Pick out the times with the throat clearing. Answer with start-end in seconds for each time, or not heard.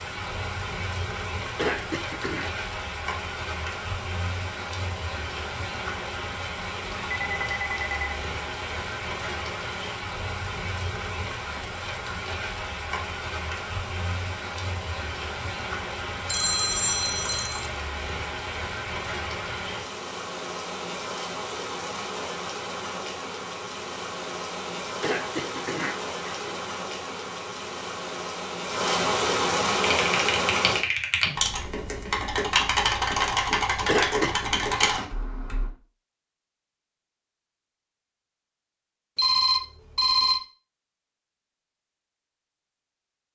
1.6-2.5, 25.0-26.5, 33.9-34.4.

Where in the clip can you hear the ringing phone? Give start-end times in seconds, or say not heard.
7.1-8.2, 16.2-17.7, 39.1-40.4.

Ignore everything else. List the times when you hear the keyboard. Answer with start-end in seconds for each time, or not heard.
29.8-35.7.